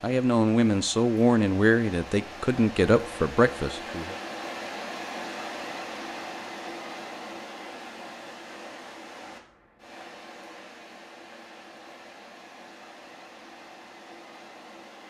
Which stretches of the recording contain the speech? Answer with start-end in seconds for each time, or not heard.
0.0-4.2.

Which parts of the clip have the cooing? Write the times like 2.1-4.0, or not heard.
not heard.